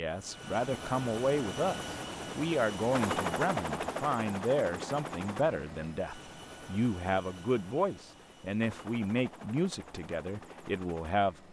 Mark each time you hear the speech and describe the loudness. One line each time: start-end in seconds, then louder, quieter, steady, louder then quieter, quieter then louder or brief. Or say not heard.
0.0-11.3 steady.